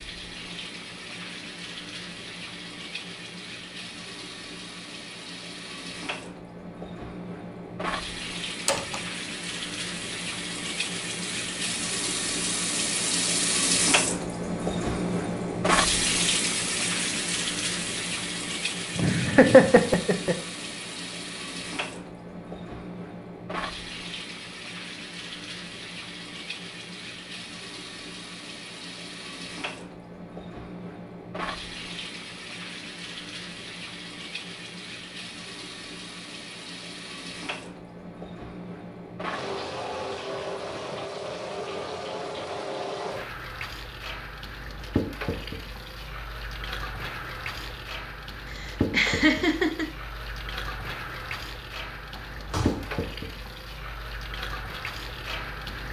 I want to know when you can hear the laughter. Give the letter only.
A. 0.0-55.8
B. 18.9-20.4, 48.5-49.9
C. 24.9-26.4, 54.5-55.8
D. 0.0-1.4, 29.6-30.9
B.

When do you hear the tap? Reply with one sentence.
The tap can be heard from 0.0 to 55.8 s.